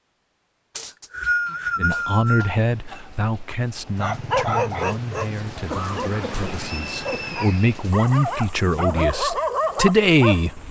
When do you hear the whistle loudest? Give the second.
1 s.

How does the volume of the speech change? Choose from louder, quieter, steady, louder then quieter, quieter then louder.
quieter then louder.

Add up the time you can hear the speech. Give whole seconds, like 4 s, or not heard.
9 s.